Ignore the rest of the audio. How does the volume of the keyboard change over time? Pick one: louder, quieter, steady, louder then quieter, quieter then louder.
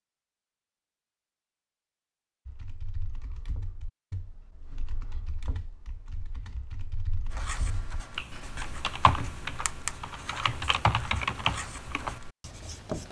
louder.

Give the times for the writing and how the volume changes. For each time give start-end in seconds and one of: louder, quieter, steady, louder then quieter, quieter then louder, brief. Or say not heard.
7.3-13.0 louder then quieter.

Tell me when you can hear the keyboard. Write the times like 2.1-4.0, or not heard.
2.5-12.2.